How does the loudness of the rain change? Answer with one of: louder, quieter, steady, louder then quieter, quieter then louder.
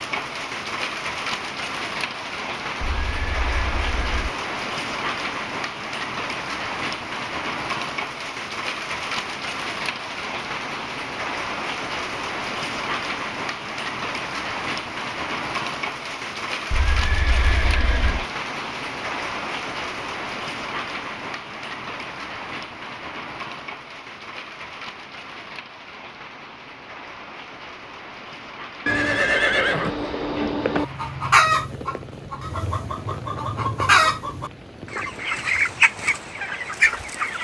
quieter.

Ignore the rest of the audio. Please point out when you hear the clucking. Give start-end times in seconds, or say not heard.
30.8-37.3.